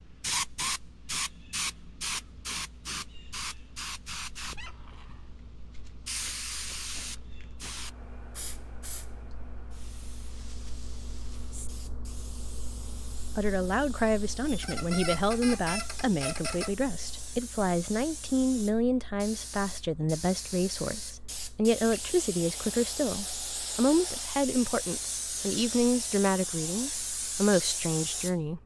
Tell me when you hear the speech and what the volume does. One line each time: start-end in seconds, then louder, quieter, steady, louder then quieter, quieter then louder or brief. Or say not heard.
13.3-28.6 steady.